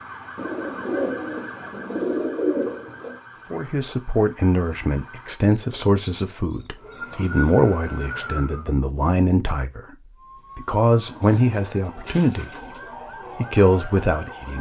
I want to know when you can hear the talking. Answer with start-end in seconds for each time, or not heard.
3.5-9.9, 10.6-14.5.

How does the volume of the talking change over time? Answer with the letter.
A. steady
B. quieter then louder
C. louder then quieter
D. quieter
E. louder
A.